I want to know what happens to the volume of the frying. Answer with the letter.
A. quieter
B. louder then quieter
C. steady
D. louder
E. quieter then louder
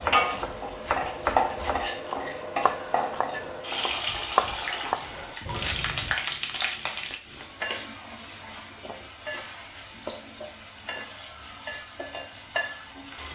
A.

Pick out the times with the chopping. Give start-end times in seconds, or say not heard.
0.0-6.2.